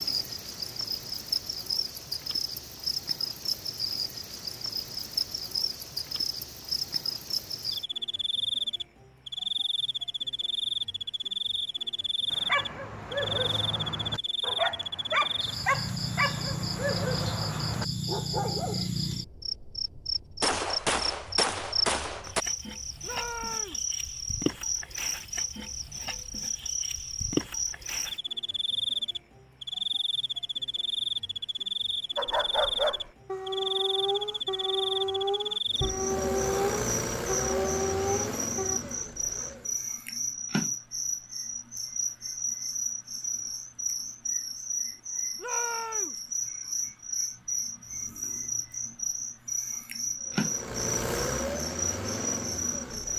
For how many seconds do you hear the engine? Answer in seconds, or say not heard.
7 s.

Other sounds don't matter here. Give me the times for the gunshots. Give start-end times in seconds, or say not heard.
20.4-22.4.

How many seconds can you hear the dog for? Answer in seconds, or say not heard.
13 s.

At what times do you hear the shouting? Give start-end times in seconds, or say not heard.
23.0-23.9, 45.4-46.2.